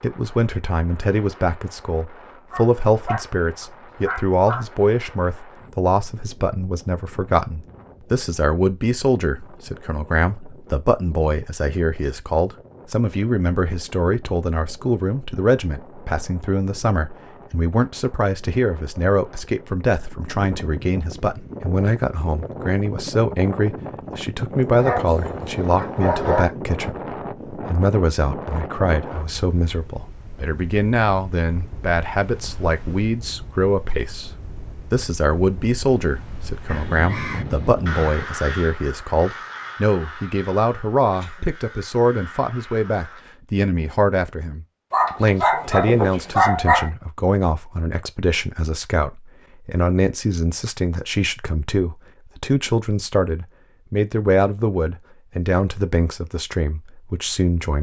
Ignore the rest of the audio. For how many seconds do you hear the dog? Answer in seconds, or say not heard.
6 s.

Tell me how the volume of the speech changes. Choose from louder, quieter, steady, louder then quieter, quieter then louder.
steady.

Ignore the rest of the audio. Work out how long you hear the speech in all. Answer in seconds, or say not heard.
57 s.